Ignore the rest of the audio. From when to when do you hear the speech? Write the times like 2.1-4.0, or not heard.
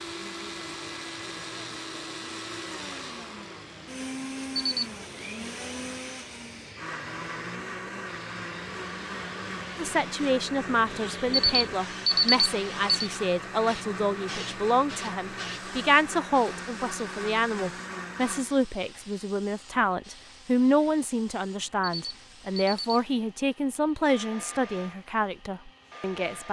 9.8-26.4.